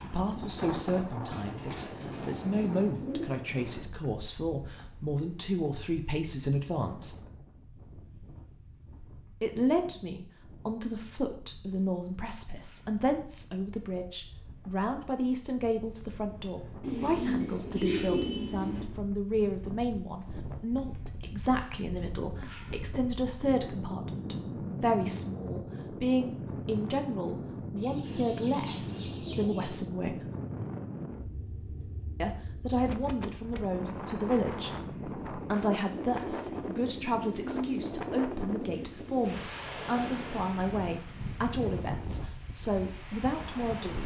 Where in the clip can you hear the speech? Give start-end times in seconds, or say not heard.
0.0-7.2, 9.4-30.2, 32.2-34.7, 35.4-44.0.